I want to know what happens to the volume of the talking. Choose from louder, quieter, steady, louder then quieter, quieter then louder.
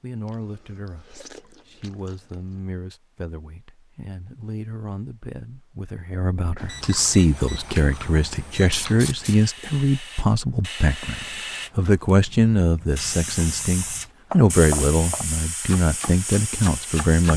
louder.